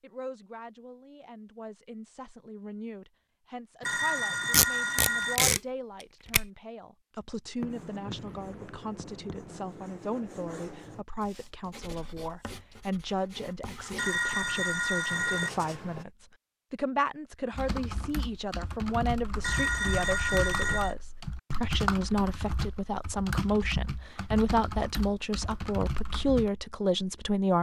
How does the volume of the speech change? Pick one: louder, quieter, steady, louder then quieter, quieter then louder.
louder.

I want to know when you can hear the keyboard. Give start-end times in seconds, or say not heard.
17.5-26.5.